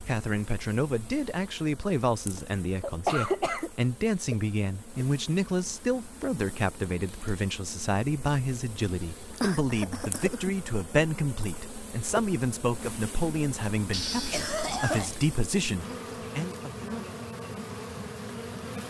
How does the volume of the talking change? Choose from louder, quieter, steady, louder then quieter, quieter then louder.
steady.